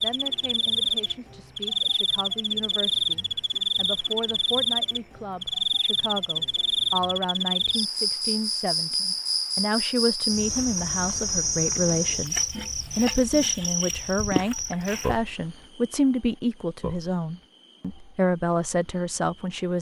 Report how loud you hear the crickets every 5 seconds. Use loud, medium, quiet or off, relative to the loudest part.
loud, loud, loud, quiet.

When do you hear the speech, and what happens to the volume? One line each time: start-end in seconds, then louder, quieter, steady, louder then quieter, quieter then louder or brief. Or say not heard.
0.0-19.7 louder.